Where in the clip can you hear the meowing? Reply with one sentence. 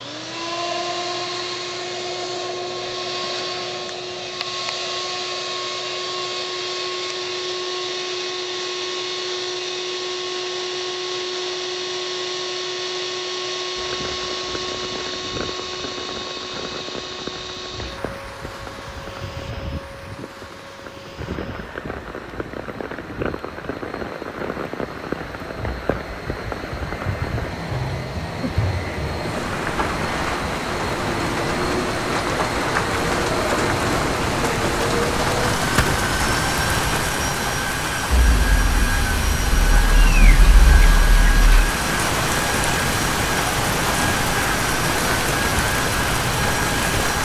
The meowing can be heard from 39.5 to 41.8 s.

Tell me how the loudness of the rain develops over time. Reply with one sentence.
The volume of the rain goes up.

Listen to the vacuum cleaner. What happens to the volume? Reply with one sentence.
The volume of the vacuum cleaner goes down, then up.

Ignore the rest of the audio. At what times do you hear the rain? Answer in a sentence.
The rain can be heard from 13.8 to 47.2 s.